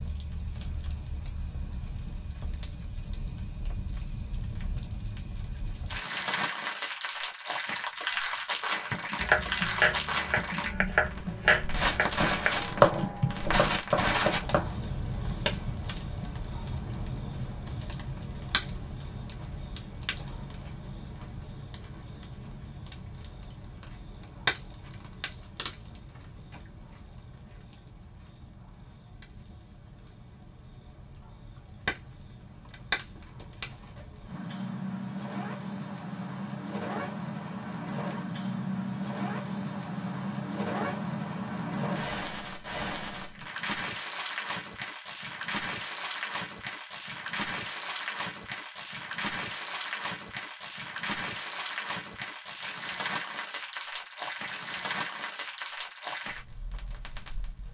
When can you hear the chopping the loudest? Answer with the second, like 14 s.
13 s.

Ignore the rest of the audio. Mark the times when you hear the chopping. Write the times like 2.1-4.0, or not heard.
9.2-14.8.